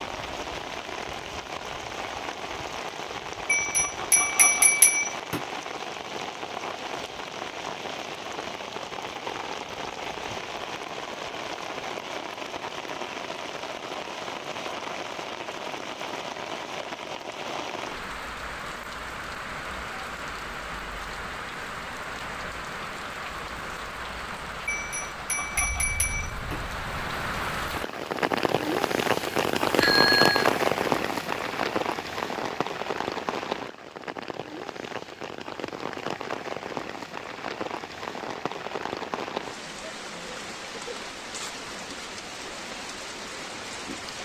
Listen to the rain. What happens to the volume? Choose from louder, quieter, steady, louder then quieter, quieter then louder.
louder then quieter.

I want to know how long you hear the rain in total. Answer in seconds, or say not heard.
44 s.